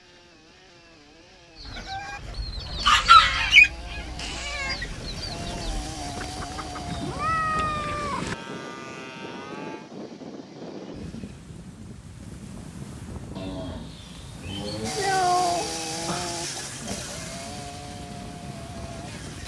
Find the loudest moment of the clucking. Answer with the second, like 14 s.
3 s.